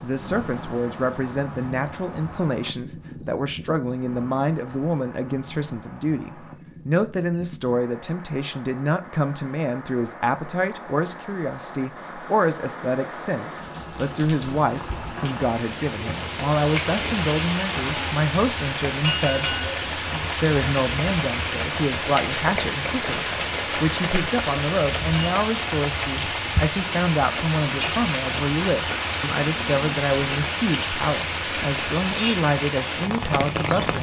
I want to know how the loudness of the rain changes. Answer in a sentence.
The loudness of the rain goes up.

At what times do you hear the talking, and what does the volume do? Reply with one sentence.
You can hear the talking from 0.0 to 33.9 s, at a steady volume.